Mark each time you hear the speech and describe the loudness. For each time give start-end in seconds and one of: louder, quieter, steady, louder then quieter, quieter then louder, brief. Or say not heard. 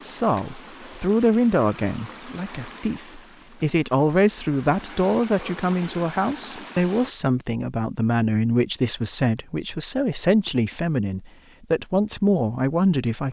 0.0-13.2 steady.